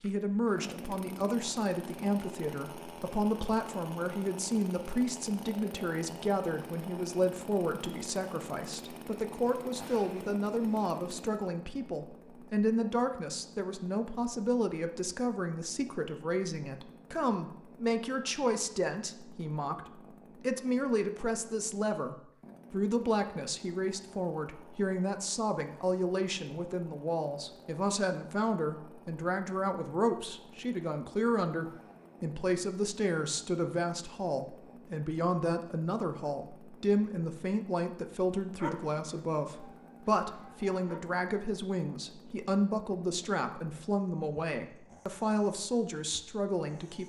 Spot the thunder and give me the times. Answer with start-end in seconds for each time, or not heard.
not heard.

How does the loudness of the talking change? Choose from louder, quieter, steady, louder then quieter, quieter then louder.
steady.